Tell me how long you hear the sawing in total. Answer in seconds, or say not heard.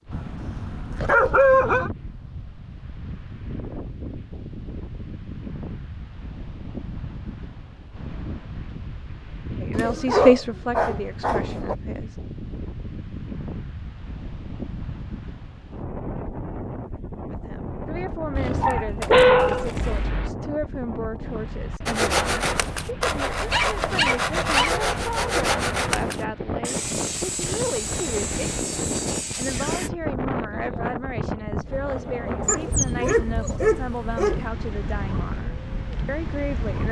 8 s.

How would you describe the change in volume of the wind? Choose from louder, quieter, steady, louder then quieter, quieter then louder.
louder.